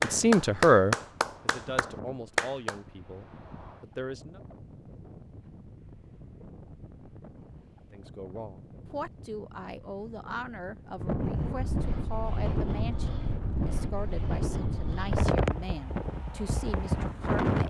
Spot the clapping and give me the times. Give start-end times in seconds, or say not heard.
0.0-2.8.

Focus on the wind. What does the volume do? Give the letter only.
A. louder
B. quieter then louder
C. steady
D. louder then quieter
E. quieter
A.